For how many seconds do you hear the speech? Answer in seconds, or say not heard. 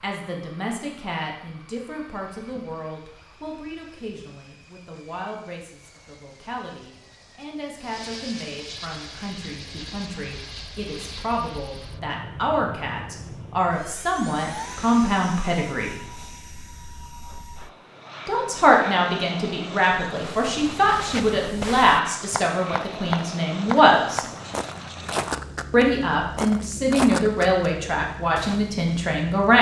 26 s.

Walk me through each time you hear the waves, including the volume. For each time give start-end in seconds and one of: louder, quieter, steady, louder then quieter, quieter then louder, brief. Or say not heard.
not heard.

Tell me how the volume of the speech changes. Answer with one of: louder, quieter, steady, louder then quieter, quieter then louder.
louder.